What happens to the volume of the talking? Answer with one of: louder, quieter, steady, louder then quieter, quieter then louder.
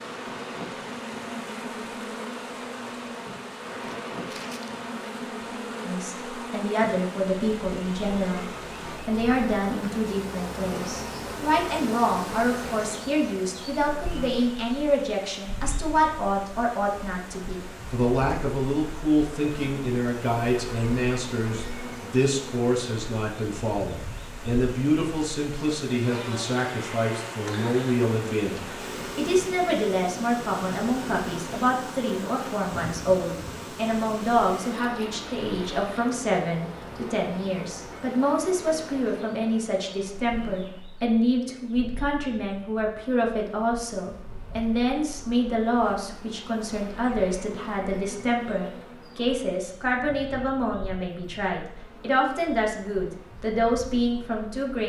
steady.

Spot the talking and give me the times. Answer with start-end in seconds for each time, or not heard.
5.8-54.8.